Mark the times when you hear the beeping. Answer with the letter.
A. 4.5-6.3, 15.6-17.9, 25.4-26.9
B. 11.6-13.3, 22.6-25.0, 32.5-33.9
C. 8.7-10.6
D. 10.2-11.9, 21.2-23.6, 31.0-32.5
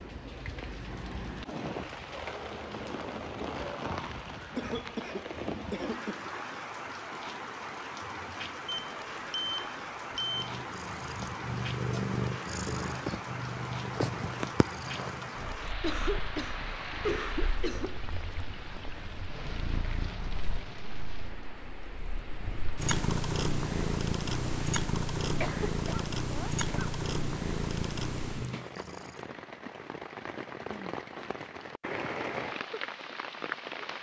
C.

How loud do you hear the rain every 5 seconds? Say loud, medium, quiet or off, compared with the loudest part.
loud, loud, loud, loud, medium, medium, loud.